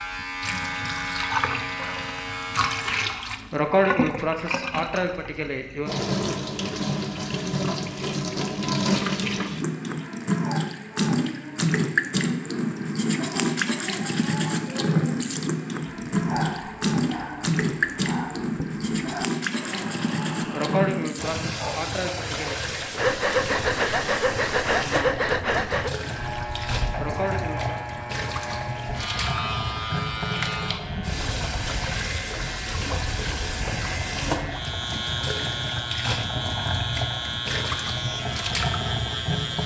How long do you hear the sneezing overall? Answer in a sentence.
The sneezing can be heard for 5 seconds in total.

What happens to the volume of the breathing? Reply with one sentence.
The loudness of the breathing goes up.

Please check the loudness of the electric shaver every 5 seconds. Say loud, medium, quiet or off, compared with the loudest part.
loud, off, off, off, off, loud, loud, loud.